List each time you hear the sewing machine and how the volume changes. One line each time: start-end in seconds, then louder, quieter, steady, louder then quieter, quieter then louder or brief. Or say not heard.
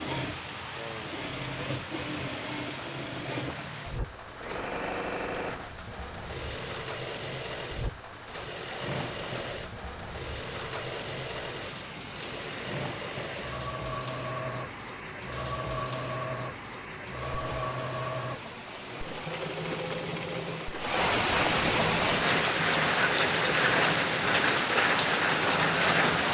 0.0-26.2 steady.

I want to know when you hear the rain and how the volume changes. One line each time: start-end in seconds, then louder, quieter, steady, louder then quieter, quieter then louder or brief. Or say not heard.
0.0-26.2 louder.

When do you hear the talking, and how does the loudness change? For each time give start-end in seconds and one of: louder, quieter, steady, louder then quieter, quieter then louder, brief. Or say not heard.
not heard.